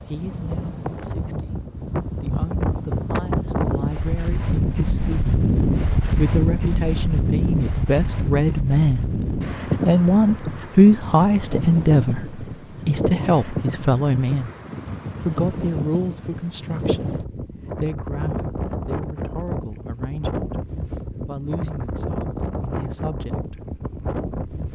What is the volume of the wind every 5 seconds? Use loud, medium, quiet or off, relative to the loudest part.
loud, loud, medium, medium, medium.